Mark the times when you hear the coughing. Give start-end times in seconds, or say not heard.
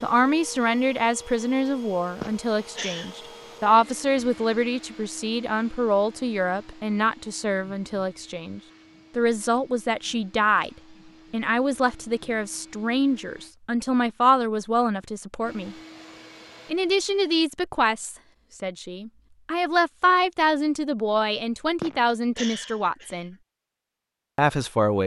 2.2-3.1, 21.8-23.2.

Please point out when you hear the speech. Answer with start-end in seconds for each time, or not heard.
0.0-15.8, 16.7-23.4, 24.4-25.0.